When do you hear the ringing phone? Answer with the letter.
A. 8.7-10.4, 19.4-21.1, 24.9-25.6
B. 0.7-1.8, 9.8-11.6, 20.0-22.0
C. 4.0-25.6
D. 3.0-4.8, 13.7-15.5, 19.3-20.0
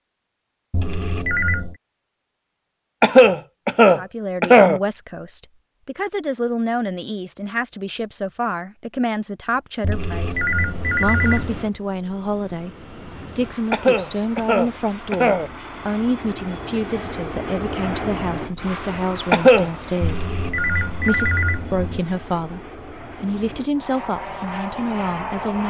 B.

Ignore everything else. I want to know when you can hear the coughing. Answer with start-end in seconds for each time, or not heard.
3.0-4.8, 13.7-15.5, 19.3-20.0.